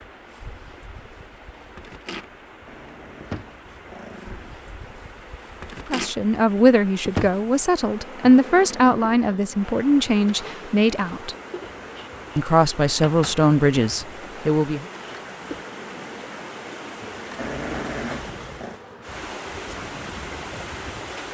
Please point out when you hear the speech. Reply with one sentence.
The speech can be heard from 5.8 to 11.3 s and from 12.3 to 14.8 s.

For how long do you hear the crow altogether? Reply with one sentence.
The crow can't be heard in this clip.